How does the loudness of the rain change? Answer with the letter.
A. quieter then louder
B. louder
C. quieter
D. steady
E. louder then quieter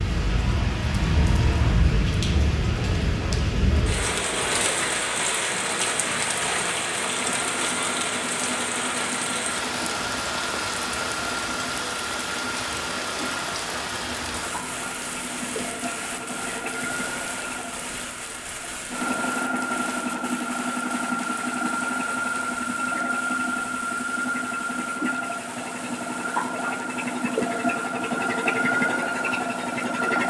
C.